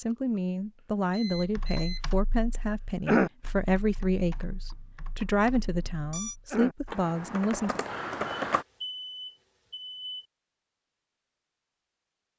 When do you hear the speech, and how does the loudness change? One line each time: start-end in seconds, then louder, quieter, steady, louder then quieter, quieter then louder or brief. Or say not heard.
0.0-7.8 steady.